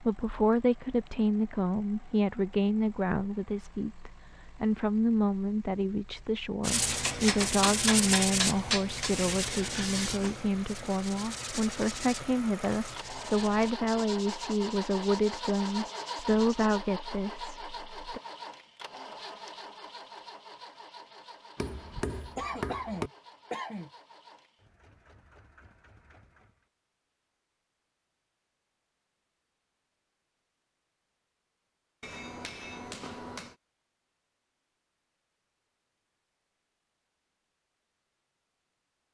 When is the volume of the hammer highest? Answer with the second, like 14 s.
9 s.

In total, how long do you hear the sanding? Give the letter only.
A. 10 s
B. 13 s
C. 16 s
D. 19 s
A.